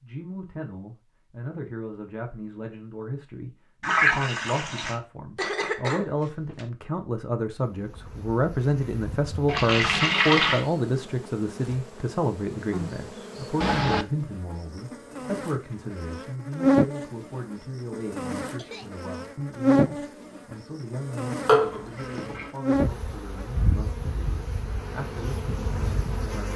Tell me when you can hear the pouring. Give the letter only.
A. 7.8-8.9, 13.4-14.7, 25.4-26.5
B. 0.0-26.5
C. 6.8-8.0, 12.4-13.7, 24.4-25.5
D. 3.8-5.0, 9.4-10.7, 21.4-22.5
D.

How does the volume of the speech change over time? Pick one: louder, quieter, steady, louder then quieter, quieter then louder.
louder then quieter.